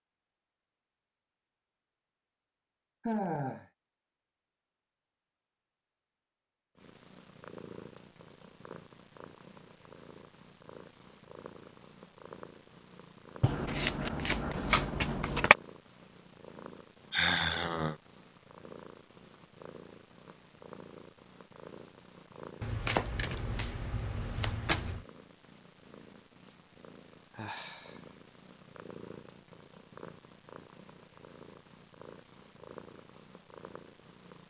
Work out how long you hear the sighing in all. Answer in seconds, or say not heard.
2 s.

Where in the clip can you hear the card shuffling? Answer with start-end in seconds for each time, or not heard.
13.4-15.6, 22.6-25.1.